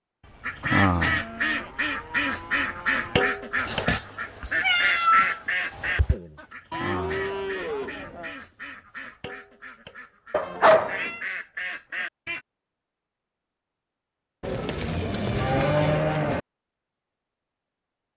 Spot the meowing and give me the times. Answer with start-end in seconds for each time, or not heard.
3.5-6.2, 10.3-11.2.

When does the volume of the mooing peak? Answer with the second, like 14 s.
16 s.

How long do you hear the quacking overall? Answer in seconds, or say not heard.
12 s.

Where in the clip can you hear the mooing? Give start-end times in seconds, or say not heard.
0.2-3.2, 6.7-8.3, 14.4-16.4.